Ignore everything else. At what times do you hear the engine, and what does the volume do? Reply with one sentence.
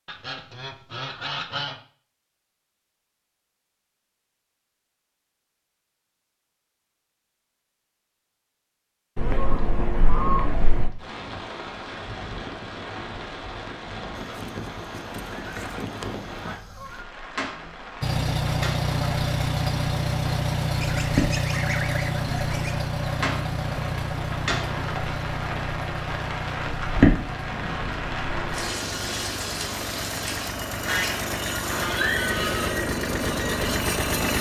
The engine can be heard from 18.0 to 34.3 s, getting quieter then louder.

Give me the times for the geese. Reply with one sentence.
The geese can be heard from 0.1 to 1.8 s, from 9.2 to 10.9 s, from 14.2 to 17.1 s, from 20.8 to 22.8 s and from 30.9 to 32.8 s.